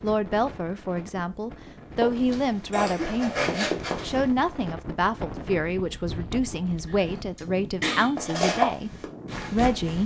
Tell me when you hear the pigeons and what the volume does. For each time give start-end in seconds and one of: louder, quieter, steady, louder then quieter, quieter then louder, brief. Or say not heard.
not heard.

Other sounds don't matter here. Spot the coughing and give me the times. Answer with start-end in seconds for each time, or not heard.
2.7-3.3, 6.9-8.1.